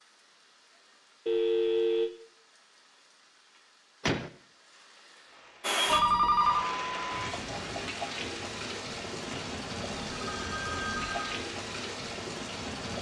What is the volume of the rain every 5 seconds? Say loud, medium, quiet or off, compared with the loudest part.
quiet, loud, loud.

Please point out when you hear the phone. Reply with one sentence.
The phone can be heard from 1.2 to 2.1 s, from 5.8 to 6.7 s and from 10.1 to 11.4 s.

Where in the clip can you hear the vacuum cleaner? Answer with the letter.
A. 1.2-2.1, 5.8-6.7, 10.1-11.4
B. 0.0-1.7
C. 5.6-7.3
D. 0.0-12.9
C.